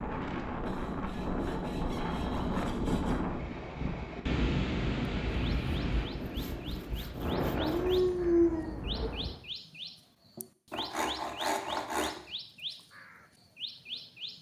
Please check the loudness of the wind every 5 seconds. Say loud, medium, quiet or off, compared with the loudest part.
loud, loud, off.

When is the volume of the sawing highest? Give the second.
12 s.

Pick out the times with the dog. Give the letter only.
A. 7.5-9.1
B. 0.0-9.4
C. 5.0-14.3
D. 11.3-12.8
A.